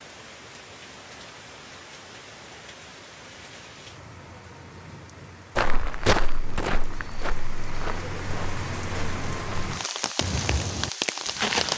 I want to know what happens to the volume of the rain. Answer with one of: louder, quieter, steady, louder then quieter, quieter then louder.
louder.